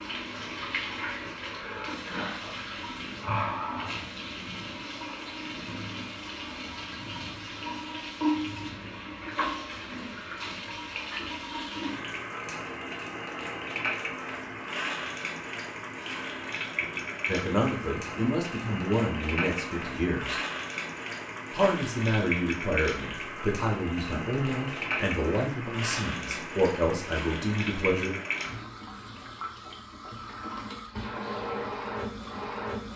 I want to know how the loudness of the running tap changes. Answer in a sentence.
The loudness of the running tap stays about the same.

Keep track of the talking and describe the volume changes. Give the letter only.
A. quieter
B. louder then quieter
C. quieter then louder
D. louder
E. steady
E.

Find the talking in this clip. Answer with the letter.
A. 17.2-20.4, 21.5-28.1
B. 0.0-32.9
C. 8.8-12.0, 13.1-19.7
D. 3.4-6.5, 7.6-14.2
A.